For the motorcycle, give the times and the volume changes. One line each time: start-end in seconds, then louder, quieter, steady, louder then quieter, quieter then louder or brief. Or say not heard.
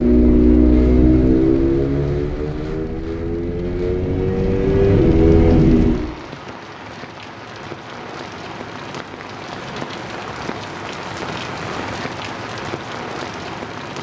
0.0-6.0 quieter then louder.